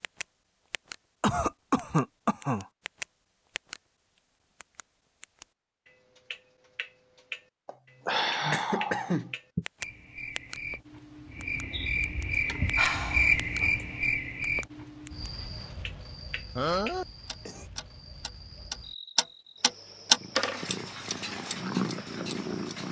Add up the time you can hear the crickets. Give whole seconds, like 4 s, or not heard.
13 s.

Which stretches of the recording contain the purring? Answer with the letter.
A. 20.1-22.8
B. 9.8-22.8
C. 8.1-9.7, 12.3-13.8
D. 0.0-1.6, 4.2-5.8
A.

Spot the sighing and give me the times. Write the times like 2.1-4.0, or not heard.
8.1-9.7, 12.3-13.8.